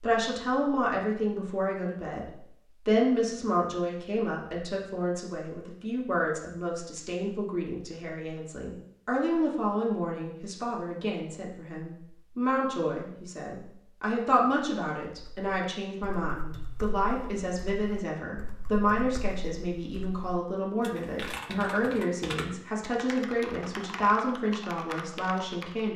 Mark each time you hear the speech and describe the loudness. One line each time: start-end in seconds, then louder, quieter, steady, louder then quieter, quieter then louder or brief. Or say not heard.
0.0-2.2 brief
2.9-25.9 steady.